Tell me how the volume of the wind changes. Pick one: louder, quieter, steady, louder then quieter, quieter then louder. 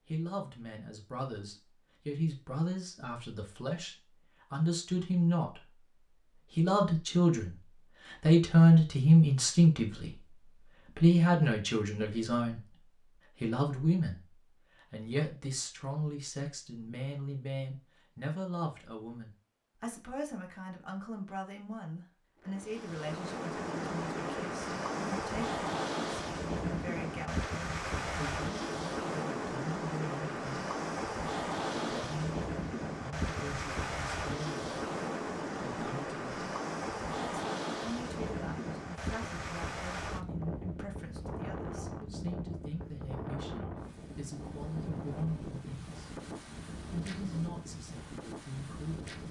quieter.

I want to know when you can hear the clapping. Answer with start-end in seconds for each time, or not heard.
not heard.